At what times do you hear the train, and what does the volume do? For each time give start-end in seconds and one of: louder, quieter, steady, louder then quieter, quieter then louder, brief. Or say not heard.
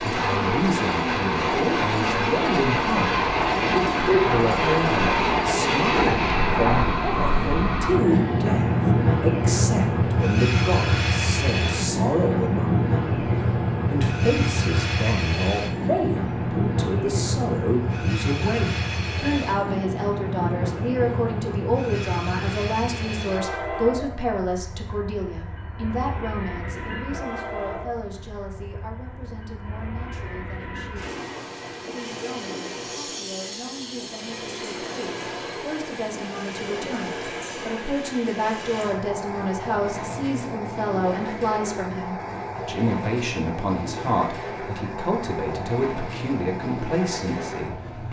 0.0-48.0 quieter.